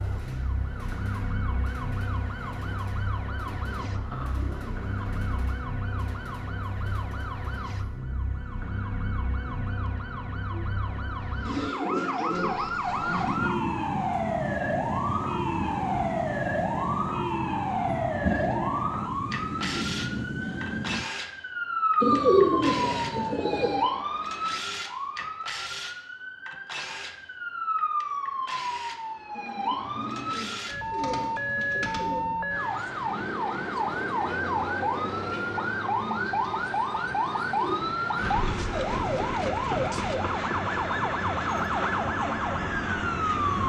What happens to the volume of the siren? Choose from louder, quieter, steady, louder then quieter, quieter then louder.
louder.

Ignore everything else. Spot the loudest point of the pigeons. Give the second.
22 s.